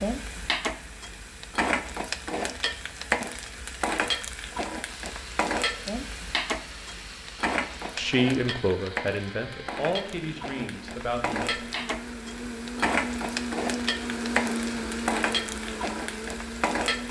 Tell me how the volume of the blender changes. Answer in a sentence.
The loudness of the blender goes up.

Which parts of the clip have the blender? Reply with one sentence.
You can hear the blender from 4.9 to 17.0 s.